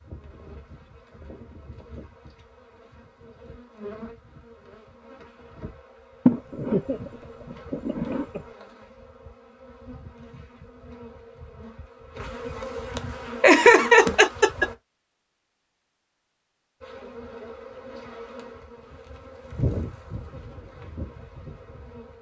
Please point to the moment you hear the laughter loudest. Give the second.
14 s.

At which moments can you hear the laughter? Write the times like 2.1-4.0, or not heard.
6.2-8.4, 13.4-14.7.